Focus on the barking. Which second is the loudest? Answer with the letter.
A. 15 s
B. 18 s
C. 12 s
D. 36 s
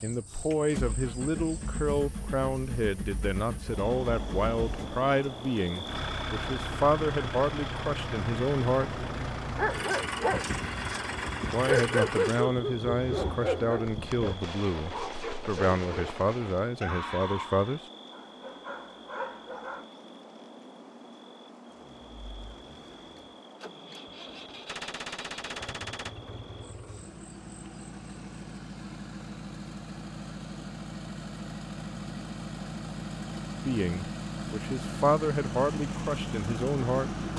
C.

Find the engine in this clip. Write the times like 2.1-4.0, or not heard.
0.0-12.5, 21.7-37.3.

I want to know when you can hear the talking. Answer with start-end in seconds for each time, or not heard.
0.0-9.1, 11.5-17.8, 33.6-37.2.